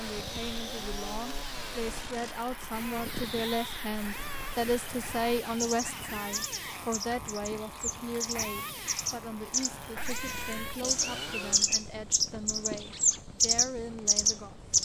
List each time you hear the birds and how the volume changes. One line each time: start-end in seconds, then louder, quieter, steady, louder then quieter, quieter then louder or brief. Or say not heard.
0.0-14.7 louder.